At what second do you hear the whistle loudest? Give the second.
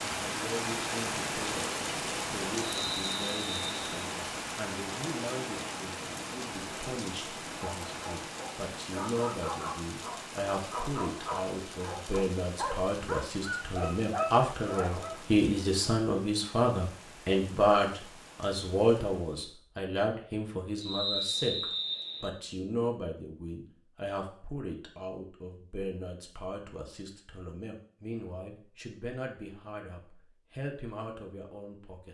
21 s.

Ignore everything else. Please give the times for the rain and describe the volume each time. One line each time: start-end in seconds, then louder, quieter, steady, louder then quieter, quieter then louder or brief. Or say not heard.
0.0-19.6 quieter.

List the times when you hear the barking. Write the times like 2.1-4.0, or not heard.
7.6-15.2.